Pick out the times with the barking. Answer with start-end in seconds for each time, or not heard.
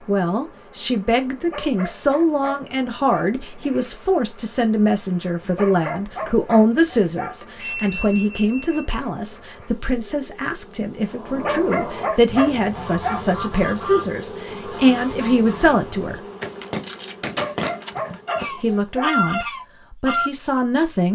1.4-3.3, 5.5-7.3, 11.3-13.2, 17.2-19.1.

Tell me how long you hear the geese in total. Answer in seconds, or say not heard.
9 s.